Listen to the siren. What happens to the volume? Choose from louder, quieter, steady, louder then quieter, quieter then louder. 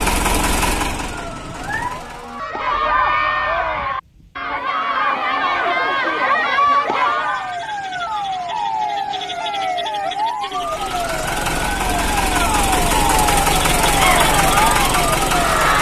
louder.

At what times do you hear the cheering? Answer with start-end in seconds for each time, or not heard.
2.3-7.5, 13.9-15.7.